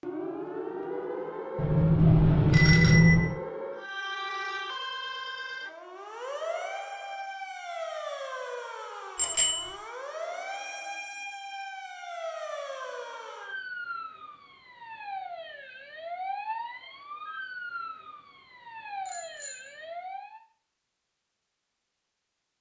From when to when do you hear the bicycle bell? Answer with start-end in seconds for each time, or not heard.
1.6-3.4, 9.2-9.8, 19.1-19.7.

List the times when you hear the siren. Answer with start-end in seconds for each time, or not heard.
0.0-20.4.